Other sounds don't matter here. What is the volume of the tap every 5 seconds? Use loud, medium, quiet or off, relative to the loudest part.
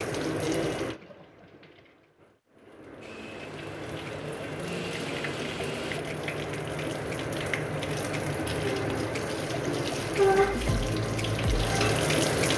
medium, medium, loud.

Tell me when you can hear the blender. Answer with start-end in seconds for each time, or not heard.
3.0-6.0.